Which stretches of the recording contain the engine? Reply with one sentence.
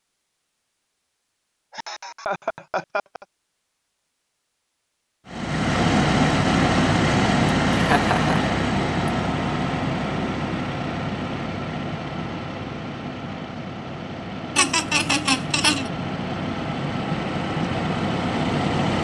The engine can be heard from 5.2 to 18.9 s.